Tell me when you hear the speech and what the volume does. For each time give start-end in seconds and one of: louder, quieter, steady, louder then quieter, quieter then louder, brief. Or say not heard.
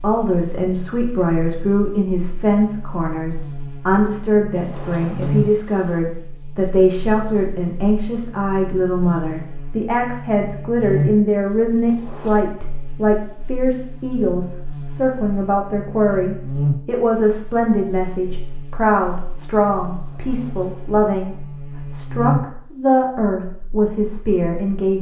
0.0-24.9 steady.